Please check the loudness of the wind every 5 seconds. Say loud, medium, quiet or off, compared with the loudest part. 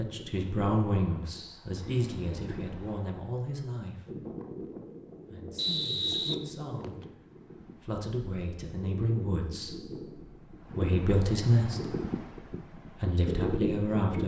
medium, medium, loud.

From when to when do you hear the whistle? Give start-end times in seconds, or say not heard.
5.5-7.0.